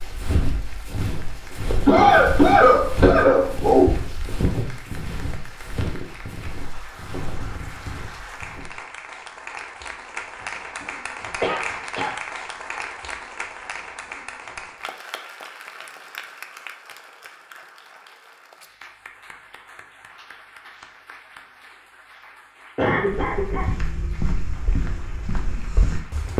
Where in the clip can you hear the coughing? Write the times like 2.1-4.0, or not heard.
1.9-3.9, 11.4-12.1, 22.8-23.6.